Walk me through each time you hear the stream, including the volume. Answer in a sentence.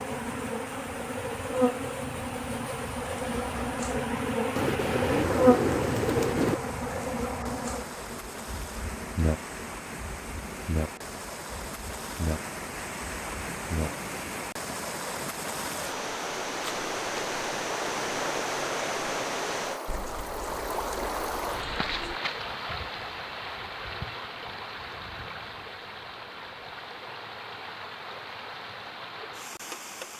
You can hear the stream from 0.0 to 30.1 s, getting louder then quieter.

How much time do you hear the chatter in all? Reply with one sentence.
You can't hear the chatter here.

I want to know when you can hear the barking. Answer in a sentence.
The barking can't be heard in this clip.